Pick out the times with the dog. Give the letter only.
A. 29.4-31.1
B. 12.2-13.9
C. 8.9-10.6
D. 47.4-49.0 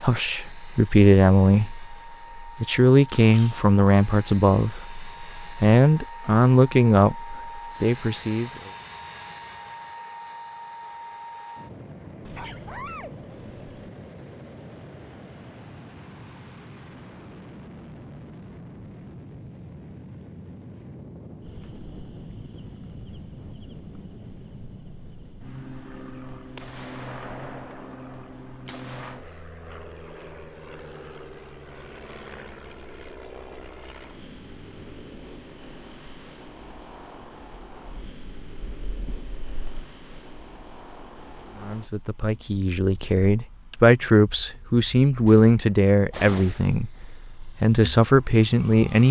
B.